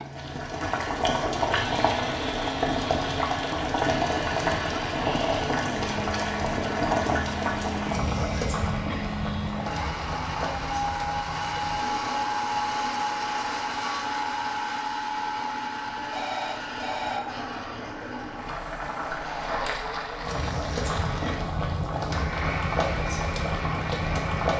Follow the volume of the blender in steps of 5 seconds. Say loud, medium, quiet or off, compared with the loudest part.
medium, medium, loud, medium, medium.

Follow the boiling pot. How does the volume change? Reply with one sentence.
The volume of the boiling pot goes down, then up.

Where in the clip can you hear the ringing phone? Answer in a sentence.
You can hear the ringing phone from 15.9 to 17.2 s.